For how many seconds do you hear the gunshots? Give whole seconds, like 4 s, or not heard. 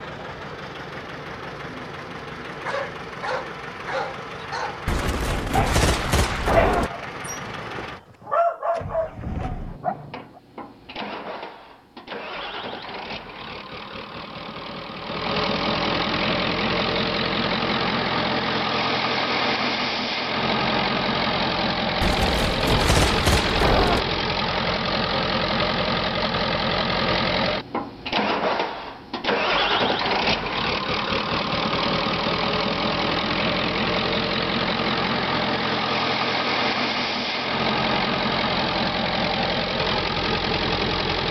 4 s.